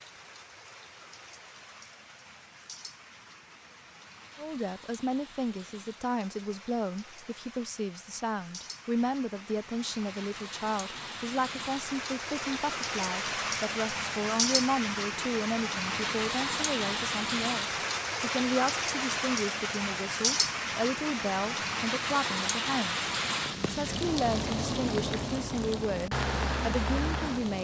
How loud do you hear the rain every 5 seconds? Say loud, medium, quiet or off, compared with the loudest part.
quiet, quiet, loud, loud, loud, loud.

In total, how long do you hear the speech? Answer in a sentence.
You can hear the speech for 23 seconds altogether.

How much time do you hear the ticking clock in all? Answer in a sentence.
The ticking clock can't be heard in this clip.